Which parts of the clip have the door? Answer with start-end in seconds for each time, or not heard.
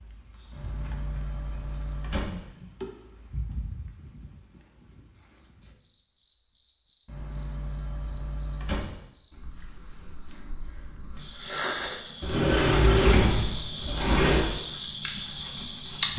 0.5-2.4, 7.0-8.9, 12.2-14.4.